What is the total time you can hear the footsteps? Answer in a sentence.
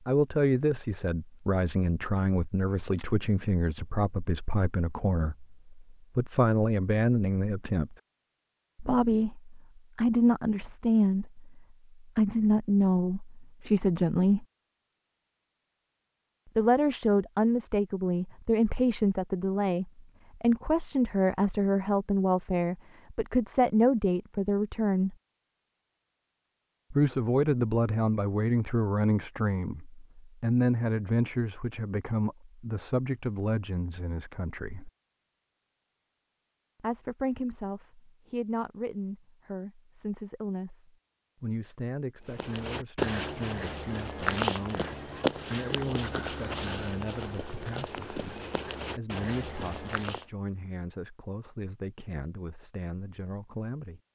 You can hear the footsteps for 8 seconds altogether.